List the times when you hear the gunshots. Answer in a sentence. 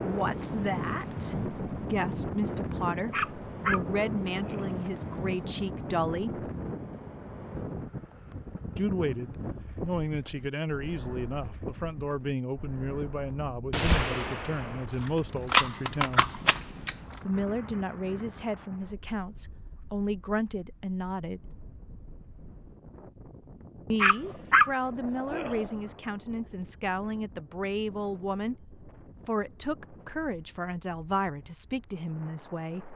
The gunshots can be heard from 13.7 to 16.9 s.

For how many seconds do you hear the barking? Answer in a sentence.
The barking can be heard for 4 seconds in total.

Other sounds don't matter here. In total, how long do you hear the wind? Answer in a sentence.
You can hear the wind for 33 seconds altogether.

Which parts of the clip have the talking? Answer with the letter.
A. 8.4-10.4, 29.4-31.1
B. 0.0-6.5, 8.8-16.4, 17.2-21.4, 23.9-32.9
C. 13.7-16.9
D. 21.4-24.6
B.